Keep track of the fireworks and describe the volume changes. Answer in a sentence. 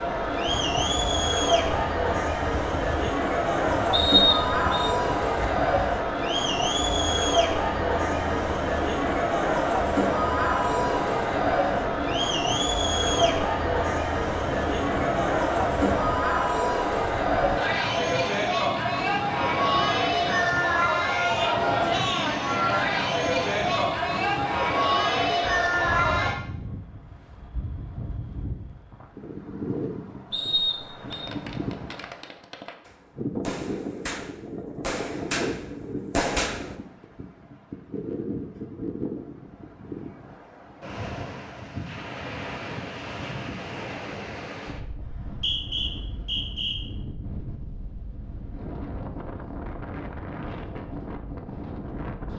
The volume of the fireworks goes up.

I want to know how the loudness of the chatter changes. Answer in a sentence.
The volume of the chatter stays about the same.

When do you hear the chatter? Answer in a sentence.
The chatter can be heard from 0.0 to 26.4 s.